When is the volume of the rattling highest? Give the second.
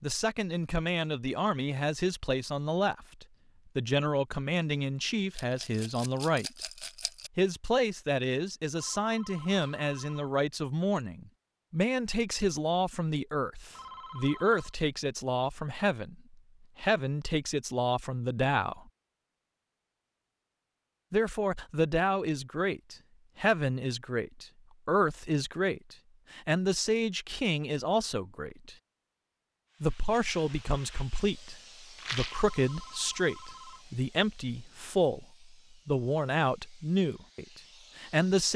32 s.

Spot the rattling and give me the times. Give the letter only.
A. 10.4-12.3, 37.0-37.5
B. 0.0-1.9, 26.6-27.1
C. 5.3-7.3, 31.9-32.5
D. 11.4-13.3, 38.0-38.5
C.